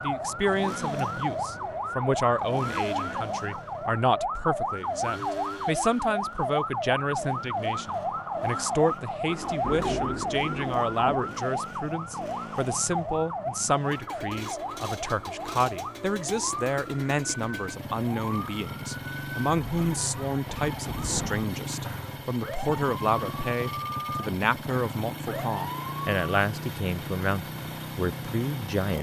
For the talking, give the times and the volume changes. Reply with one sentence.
The talking can be heard from 0.0 to 28.9 s, at a steady volume.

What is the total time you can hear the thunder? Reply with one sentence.
You can hear the thunder for 2 seconds altogether.